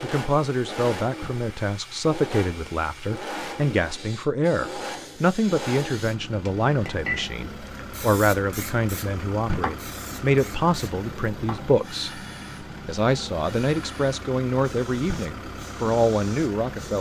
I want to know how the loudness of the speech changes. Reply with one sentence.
The loudness of the speech stays about the same.